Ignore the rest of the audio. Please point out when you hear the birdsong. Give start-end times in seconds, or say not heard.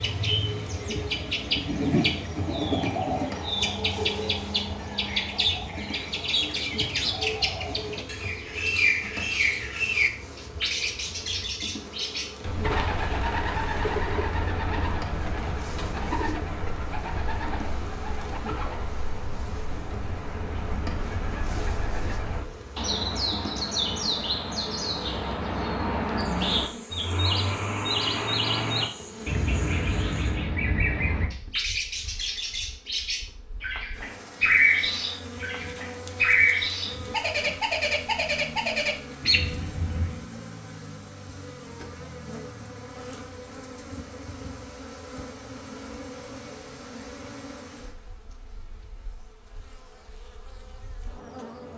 0.0-40.2.